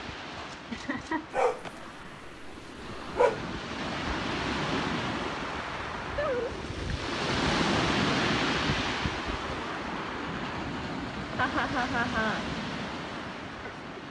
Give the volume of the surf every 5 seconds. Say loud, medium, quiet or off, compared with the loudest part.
medium, loud, medium.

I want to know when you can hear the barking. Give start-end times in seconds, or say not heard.
1.3-3.4.